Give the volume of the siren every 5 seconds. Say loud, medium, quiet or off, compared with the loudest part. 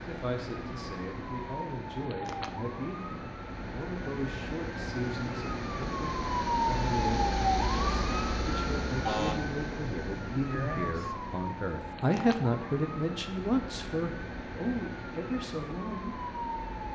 medium, loud, medium, medium.